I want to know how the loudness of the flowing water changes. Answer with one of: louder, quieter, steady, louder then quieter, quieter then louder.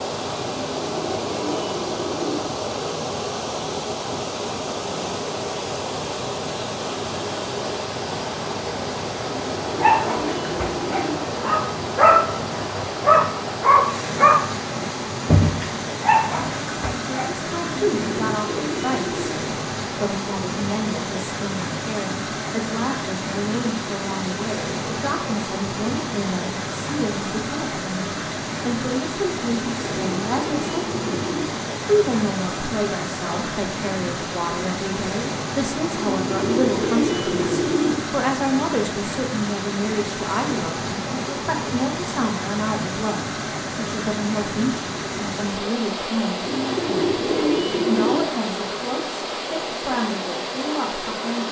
steady.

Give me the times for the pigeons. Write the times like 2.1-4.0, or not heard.
0.5-2.5, 9.2-11.2, 17.8-19.4, 29.6-31.6, 36.0-38.0, 46.4-48.2.